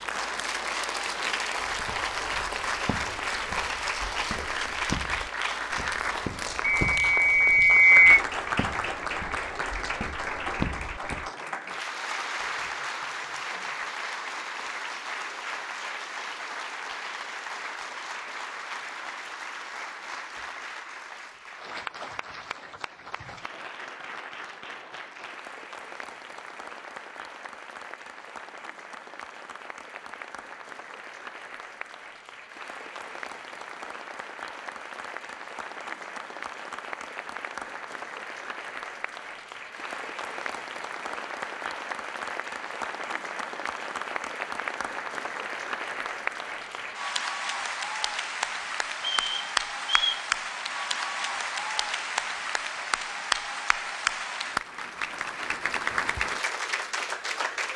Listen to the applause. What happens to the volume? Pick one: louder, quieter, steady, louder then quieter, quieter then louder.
quieter then louder.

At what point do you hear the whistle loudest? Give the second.
8 s.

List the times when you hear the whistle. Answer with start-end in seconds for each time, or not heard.
6.6-8.2, 49.0-50.2.